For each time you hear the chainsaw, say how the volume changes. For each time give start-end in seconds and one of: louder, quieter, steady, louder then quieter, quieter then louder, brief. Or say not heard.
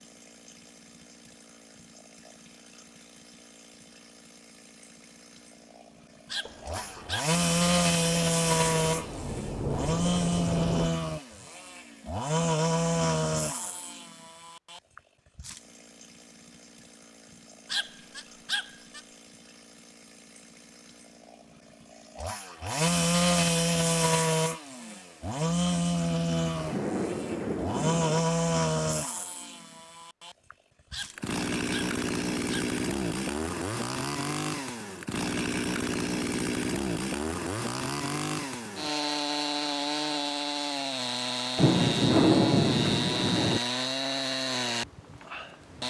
0.1-45.8 steady.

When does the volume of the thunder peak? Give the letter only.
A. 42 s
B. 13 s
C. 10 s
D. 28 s
A.